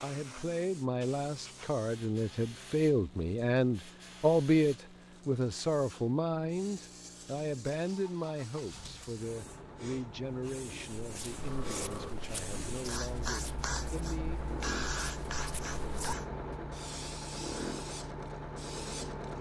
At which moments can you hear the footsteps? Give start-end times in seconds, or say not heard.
10.9-16.1.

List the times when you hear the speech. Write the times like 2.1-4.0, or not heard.
0.0-14.4.